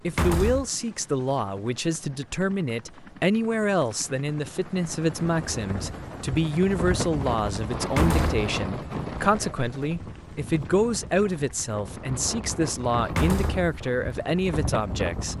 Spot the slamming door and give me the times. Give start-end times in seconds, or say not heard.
0.1-0.7, 7.8-8.4, 13.1-13.7.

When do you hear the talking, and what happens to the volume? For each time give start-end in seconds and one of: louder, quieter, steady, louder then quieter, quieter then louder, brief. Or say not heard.
0.0-15.3 steady.